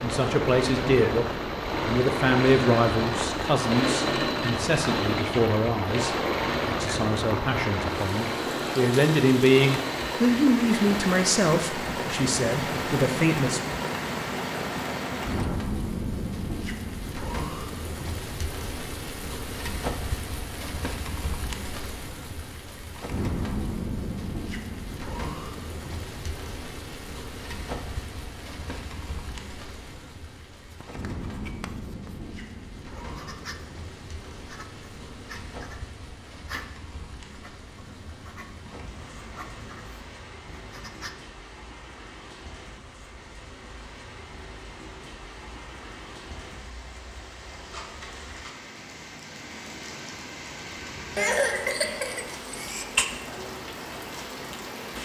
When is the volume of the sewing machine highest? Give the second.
4 s.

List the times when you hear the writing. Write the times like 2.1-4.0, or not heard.
30.7-32.3, 33.0-41.1.